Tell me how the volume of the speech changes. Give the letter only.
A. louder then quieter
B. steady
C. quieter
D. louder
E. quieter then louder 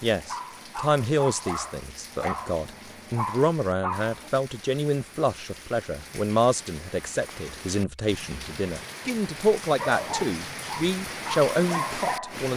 B.